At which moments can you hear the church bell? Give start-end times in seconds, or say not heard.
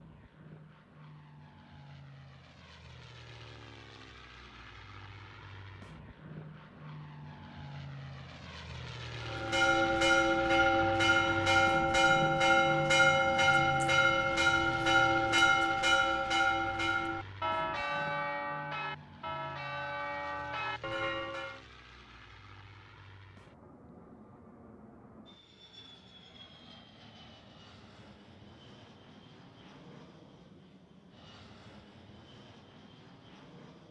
9.2-21.6.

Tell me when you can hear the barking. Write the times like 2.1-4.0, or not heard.
not heard.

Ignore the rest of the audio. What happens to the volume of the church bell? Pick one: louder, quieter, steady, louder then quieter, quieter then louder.
quieter.